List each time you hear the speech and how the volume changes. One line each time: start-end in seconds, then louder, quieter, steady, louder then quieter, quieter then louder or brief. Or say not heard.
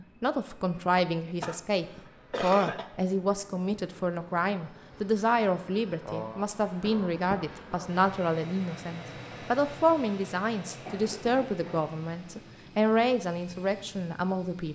0.0-14.6 steady.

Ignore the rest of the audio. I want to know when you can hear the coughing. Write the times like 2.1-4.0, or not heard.
1.4-2.9, 6.0-7.9, 10.8-11.9.